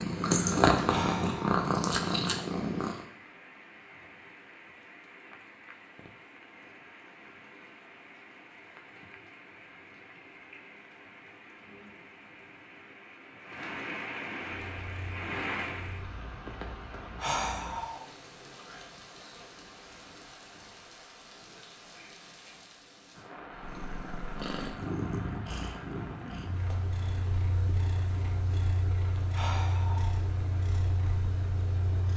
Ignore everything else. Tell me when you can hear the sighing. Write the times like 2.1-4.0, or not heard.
0.8-1.5, 17.2-18.1, 29.3-30.2.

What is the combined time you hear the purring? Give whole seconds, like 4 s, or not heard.
13 s.